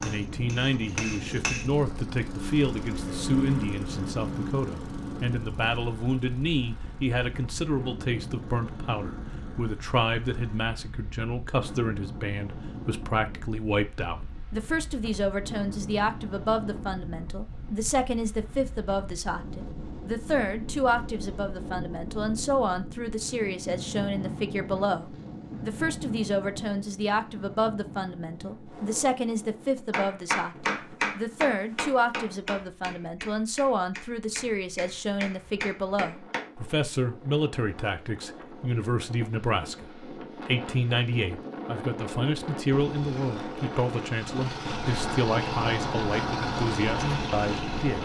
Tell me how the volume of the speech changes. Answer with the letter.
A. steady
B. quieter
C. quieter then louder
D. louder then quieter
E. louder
A.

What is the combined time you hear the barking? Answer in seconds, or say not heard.
not heard.